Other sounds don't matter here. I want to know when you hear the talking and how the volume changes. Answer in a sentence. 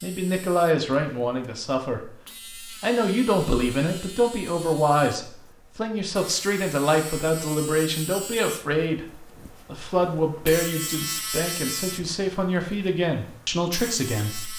The talking can be heard from 0.0 to 14.5 s, at a steady volume.